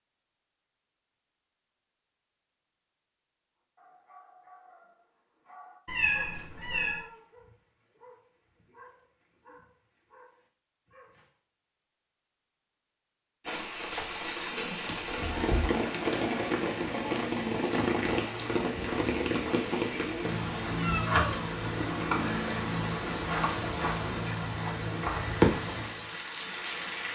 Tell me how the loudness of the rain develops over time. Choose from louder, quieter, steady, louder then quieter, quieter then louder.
steady.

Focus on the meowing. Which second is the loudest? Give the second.
6 s.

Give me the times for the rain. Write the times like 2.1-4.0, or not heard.
13.4-27.0.